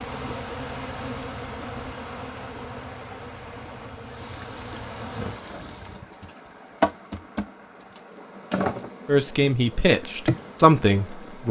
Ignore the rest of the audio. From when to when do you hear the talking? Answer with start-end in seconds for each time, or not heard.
9.1-11.4.